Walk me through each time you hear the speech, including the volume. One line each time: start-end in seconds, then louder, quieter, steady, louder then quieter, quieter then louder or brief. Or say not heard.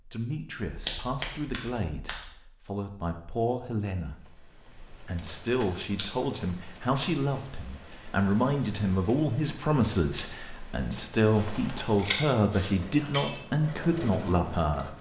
0.1-14.9 louder.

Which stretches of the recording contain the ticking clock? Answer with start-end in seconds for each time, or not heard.
not heard.